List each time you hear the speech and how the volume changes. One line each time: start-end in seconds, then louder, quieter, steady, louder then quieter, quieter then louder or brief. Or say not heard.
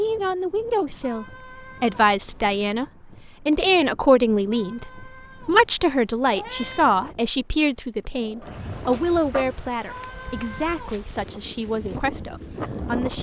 0.0-2.9 brief
3.5-13.1 quieter.